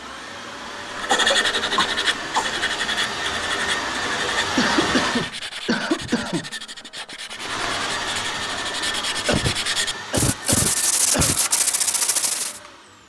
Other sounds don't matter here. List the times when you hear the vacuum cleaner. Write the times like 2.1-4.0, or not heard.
0.0-5.3, 7.3-13.0.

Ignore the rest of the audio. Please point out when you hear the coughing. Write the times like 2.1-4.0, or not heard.
1.1-2.6, 4.5-6.5, 9.2-11.4.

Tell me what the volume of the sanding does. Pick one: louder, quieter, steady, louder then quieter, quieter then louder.
quieter then louder.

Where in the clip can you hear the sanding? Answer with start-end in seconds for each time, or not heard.
0.9-12.6.